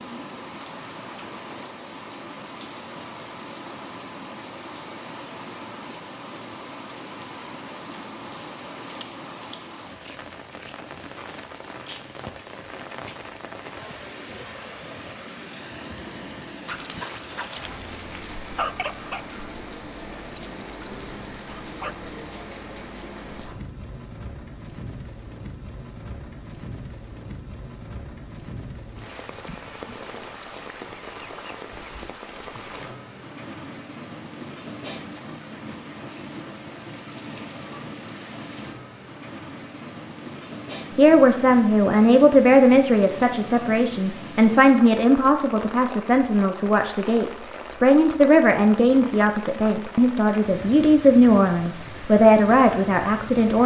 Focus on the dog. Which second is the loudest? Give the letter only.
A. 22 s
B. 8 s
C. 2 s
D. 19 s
D.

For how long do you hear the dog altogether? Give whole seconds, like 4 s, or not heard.
5 s.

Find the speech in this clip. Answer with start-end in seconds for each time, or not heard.
41.0-53.6.